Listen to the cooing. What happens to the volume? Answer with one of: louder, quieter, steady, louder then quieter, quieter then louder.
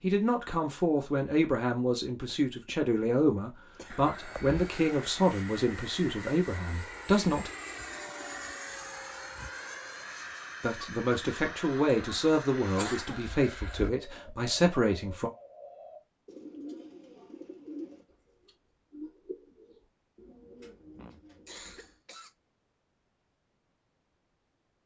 louder then quieter.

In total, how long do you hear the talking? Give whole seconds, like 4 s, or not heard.
12 s.